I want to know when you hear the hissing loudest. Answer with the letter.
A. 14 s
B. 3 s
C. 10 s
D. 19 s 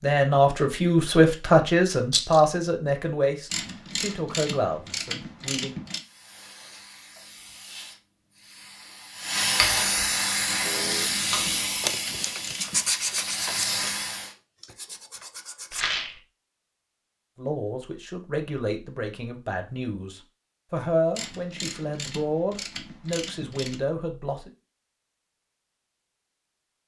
C.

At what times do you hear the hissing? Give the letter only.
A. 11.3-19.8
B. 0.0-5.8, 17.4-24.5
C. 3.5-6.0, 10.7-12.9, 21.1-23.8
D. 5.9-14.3
D.